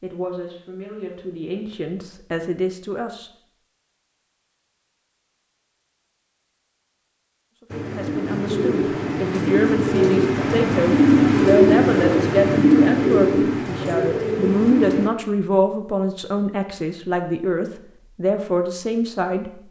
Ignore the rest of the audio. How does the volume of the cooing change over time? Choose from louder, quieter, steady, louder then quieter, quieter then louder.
louder then quieter.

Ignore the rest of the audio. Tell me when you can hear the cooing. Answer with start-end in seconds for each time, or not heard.
7.7-15.1.